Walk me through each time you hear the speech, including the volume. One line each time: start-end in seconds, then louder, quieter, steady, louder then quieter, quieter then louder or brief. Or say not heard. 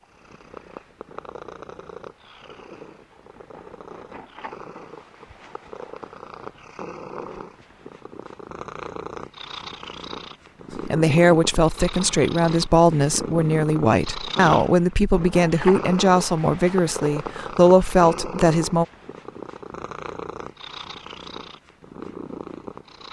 10.8-18.9 steady.